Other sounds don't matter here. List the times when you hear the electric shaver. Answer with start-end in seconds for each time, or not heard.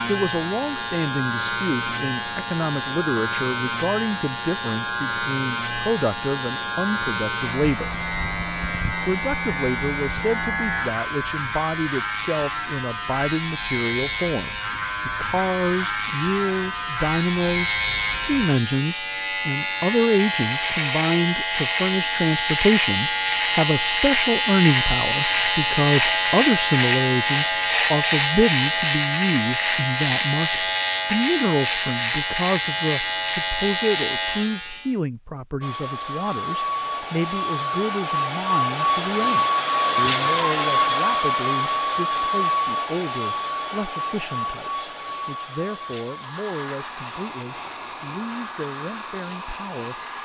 0.0-35.0.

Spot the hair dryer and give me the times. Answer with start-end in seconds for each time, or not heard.
35.6-50.2.